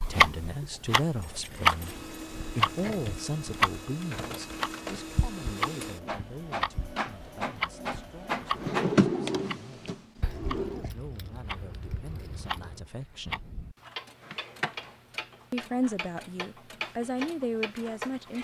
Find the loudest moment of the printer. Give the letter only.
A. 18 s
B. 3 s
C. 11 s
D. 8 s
D.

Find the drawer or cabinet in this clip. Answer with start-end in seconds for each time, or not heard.
8.6-10.8.